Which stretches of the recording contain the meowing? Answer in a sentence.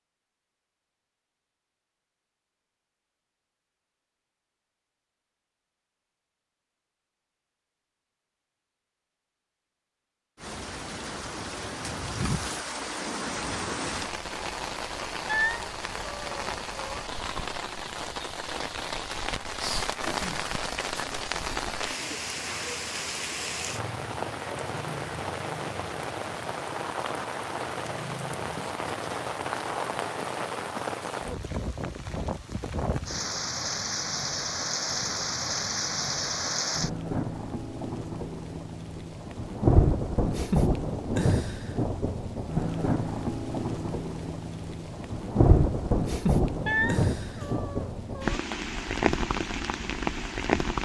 You can hear the meowing from 15.2 to 17.0 s and from 46.6 to 48.4 s.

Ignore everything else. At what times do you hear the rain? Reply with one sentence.
The rain can be heard from 10.4 to 50.8 s.